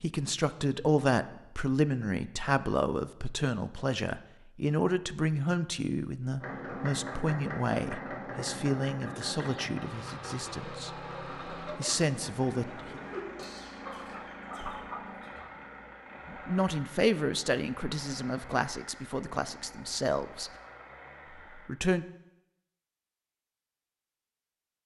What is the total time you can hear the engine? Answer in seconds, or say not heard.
15 s.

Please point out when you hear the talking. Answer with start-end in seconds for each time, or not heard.
0.0-10.9, 11.8-13.0, 16.3-20.5, 21.6-22.1.